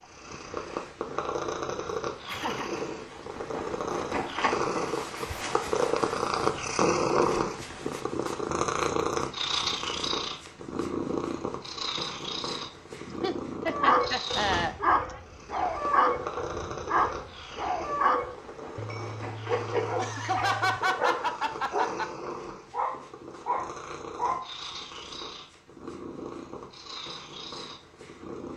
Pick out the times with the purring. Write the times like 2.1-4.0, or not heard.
0.0-28.5.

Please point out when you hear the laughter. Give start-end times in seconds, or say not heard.
2.2-2.9, 13.1-14.8, 19.9-22.1.